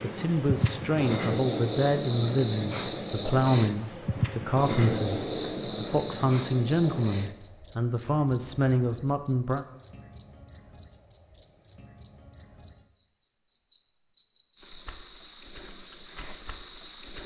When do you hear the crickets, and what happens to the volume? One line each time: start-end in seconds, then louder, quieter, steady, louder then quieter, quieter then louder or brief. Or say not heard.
0.0-17.2 quieter.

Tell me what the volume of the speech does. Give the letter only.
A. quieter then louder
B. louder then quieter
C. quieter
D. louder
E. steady
E.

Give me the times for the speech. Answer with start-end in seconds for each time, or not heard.
0.0-9.7.